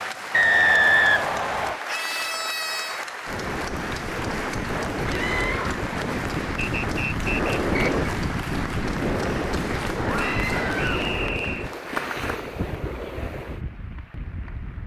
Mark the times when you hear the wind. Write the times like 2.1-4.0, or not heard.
3.2-14.8.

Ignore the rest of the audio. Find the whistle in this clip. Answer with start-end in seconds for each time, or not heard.
0.3-1.8, 6.5-8.1, 10.2-11.7.